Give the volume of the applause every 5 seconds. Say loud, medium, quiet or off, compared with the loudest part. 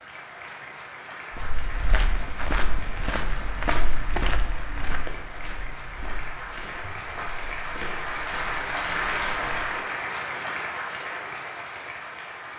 medium, loud, loud.